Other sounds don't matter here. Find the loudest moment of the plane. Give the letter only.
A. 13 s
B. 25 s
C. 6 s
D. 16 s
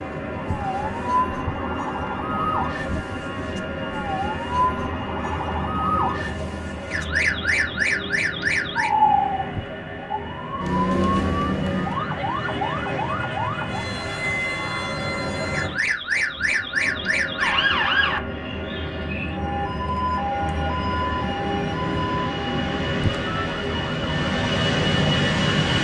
B.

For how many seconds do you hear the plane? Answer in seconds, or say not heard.
26 s.